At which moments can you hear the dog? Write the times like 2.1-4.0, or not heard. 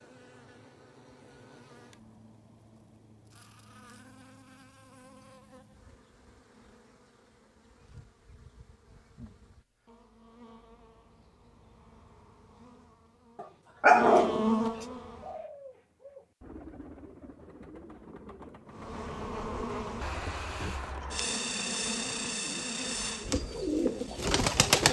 13.4-14.4.